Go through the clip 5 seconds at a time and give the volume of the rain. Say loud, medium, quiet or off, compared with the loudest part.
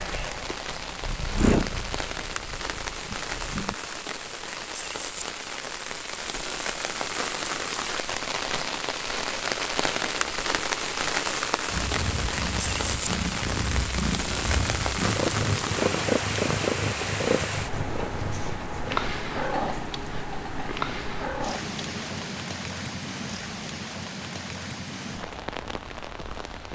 medium, loud, loud, loud, medium, medium.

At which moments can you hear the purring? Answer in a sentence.
You can hear the purring from 0.0 to 3.8 s and from 11.7 to 22.4 s.